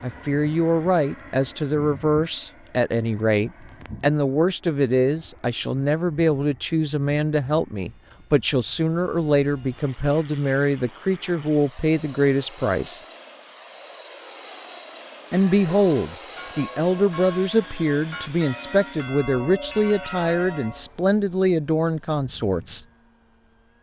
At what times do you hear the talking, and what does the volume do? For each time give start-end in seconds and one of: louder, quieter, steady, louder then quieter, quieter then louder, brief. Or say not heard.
0.0-13.1 steady
15.3-22.8 steady.